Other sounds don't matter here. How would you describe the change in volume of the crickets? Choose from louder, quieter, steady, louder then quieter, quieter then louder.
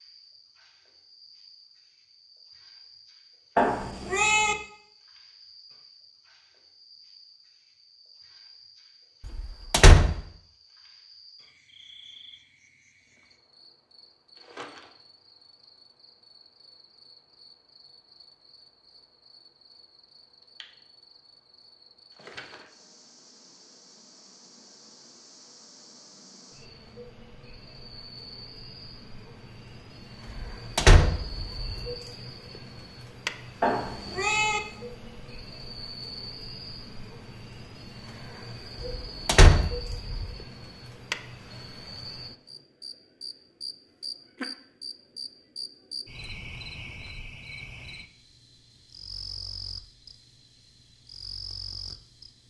louder.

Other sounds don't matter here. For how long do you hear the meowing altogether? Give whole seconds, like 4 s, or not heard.
2 s.